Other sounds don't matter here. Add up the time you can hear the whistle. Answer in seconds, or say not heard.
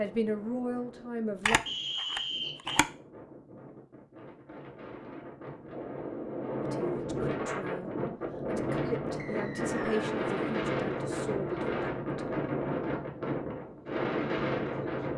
2 s.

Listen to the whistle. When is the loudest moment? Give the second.
2 s.